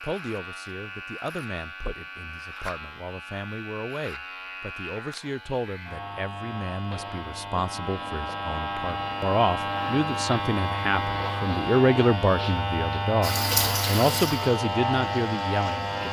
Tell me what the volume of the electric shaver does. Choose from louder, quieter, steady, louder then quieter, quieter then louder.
louder.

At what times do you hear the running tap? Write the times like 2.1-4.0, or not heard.
13.2-16.0.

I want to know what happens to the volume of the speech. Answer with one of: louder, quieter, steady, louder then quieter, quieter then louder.
louder.